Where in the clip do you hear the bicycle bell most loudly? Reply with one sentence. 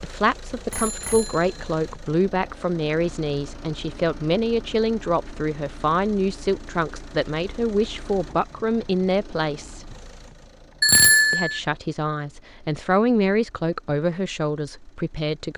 The loudest moment of the bicycle bell is at 11 seconds.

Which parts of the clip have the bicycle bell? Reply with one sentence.
You can hear the bicycle bell from 0.7 to 1.8 s and from 10.8 to 11.6 s.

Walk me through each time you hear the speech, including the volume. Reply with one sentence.
The speech can be heard from 0.0 to 9.9 s, at a steady volume; and from 11.3 to 15.5 s, getting louder then quieter.